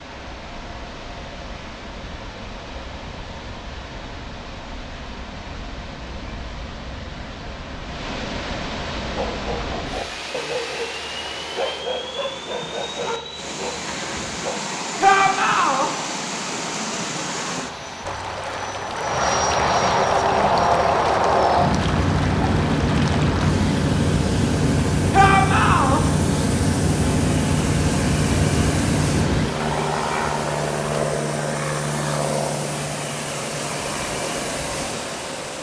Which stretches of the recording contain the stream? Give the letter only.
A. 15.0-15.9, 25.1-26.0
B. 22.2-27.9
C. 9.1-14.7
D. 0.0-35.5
D.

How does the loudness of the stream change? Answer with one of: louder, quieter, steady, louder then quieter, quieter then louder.
louder.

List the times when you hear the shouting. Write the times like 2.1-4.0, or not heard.
15.0-15.9, 25.1-26.0.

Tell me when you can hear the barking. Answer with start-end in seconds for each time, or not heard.
9.1-14.7.